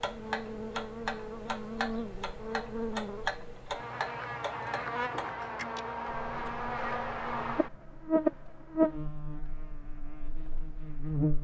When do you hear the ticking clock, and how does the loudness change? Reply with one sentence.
The ticking clock can be heard from 0.0 to 11.3 s, getting quieter.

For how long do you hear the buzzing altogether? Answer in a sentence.
You can hear the buzzing for 11 seconds altogether.